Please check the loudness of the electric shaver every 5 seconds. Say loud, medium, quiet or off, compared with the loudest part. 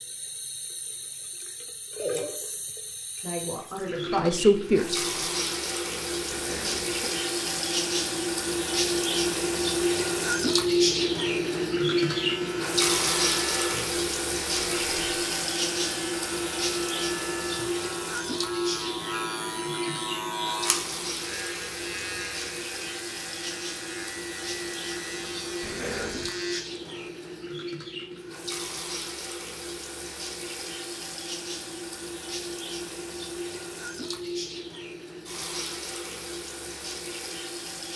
off, off, loud, loud, loud, loud, off, off.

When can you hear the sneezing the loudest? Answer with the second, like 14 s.
26 s.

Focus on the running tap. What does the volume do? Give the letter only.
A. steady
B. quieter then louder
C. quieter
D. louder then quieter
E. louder
D.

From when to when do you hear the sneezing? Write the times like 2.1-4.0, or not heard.
6.3-7.1, 25.6-26.3.